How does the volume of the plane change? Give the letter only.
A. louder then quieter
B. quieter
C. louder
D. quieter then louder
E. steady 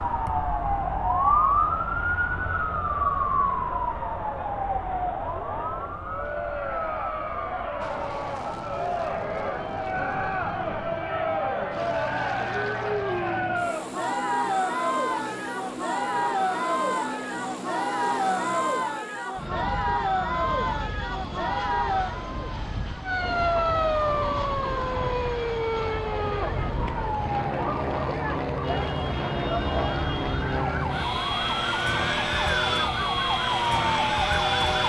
C.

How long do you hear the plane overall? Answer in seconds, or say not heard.
27 s.